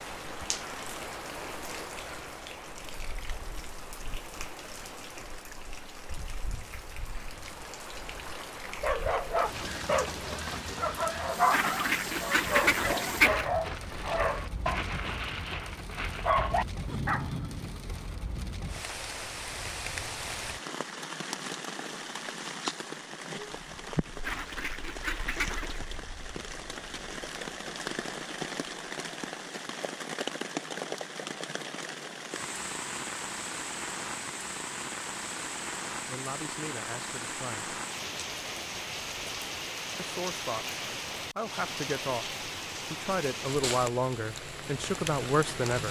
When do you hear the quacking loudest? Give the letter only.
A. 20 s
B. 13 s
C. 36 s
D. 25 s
B.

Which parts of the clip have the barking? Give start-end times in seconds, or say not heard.
8.8-17.9.